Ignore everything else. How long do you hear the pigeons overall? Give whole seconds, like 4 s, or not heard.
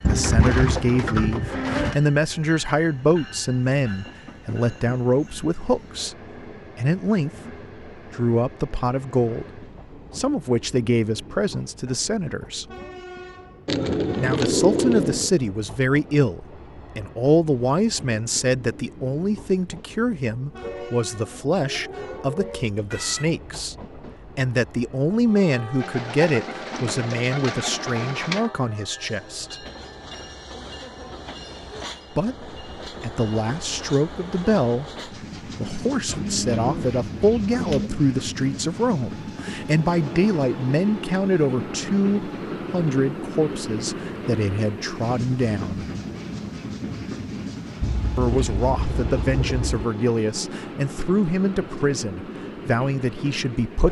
10 s.